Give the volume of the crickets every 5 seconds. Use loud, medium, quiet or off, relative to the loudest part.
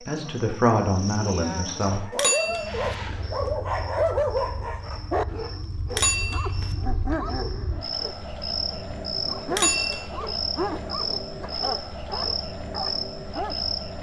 medium, loud, loud.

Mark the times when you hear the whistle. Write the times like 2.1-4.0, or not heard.
not heard.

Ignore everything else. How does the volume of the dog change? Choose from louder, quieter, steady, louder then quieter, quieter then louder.
quieter.